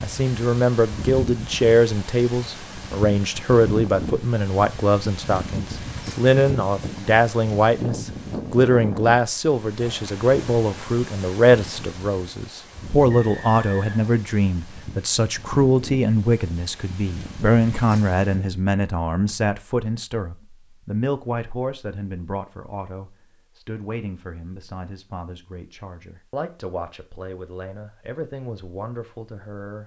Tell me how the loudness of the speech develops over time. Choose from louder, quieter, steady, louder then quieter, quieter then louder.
quieter.